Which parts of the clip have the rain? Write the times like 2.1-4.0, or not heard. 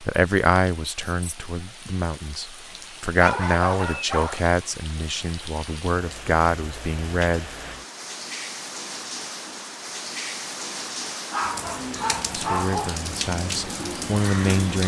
0.0-14.8.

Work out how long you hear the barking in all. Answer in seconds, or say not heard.
3 s.